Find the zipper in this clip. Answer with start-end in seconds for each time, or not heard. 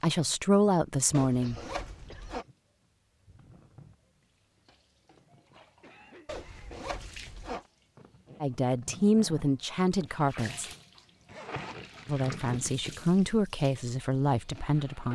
1.1-2.5, 6.2-7.7, 11.2-12.8.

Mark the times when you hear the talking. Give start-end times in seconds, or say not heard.
0.0-1.6, 8.4-10.7, 12.1-15.1.